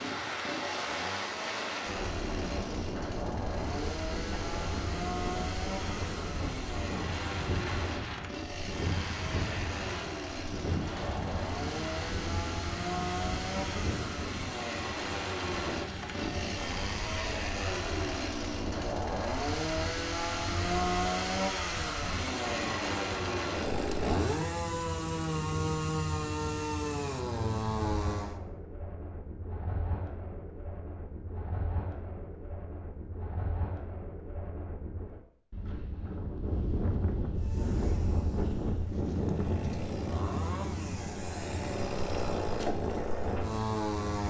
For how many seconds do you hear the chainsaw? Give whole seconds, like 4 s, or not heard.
35 s.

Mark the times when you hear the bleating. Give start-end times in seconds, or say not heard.
not heard.